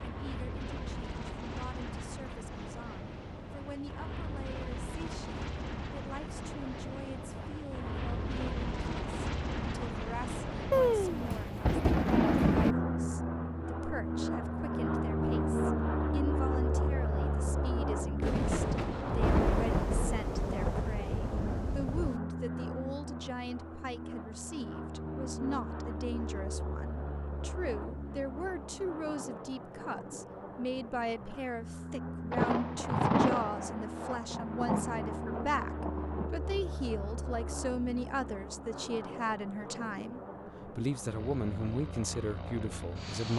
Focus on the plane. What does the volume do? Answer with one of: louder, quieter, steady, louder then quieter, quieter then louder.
louder then quieter.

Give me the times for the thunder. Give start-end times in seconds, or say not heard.
10.7-12.8, 18.2-22.2, 32.3-36.3.